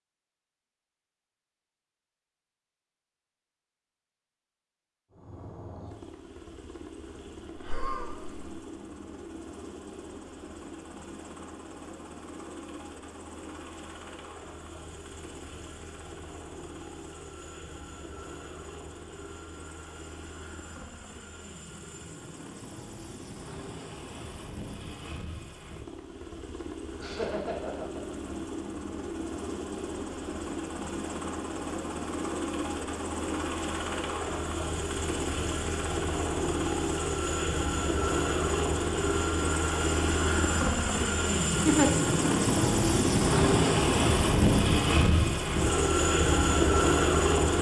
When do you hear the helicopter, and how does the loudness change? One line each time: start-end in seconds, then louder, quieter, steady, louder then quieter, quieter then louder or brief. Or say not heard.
5.1-47.5 louder.